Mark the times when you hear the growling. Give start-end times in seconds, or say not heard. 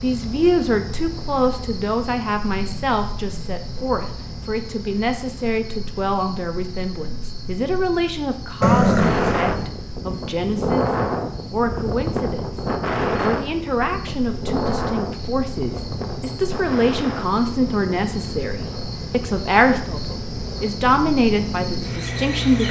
8.6-9.8.